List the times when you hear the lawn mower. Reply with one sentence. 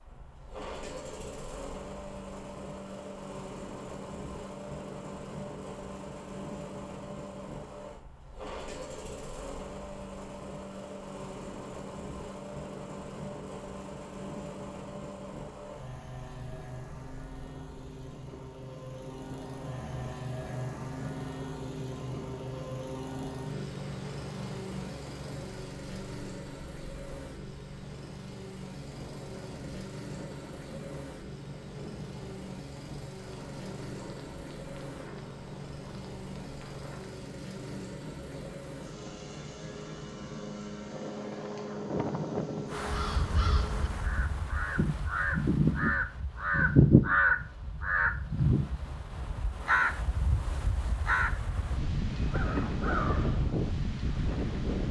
You can hear the lawn mower from 0.1 to 44.1 s.